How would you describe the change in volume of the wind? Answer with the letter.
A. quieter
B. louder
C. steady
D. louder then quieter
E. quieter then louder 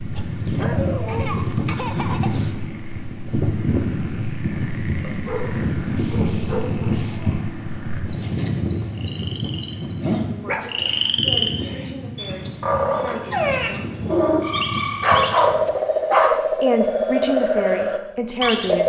A.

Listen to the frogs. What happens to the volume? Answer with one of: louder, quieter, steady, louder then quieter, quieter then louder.
louder.